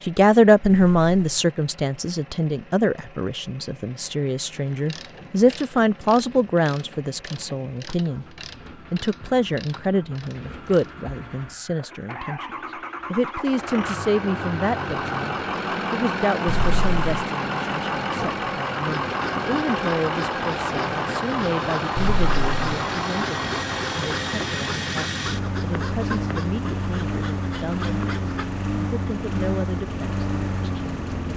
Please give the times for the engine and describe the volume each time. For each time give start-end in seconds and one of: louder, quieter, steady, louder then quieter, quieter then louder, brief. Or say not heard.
0.0-31.3 louder.